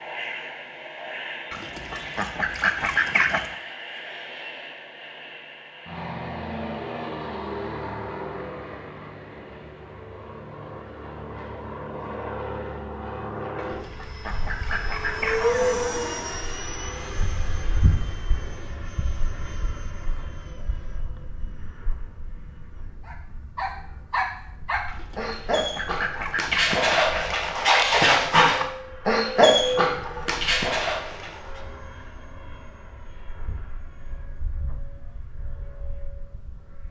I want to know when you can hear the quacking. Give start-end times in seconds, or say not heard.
1.5-3.5, 13.6-15.5, 24.9-27.4.